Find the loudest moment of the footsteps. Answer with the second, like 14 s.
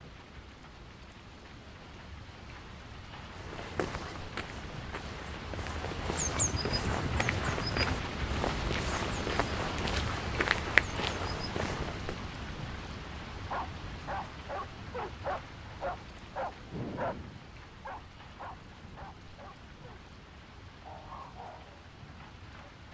11 s.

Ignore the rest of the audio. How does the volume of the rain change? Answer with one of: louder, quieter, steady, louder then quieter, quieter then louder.
louder then quieter.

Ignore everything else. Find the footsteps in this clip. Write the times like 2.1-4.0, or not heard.
3.4-12.2.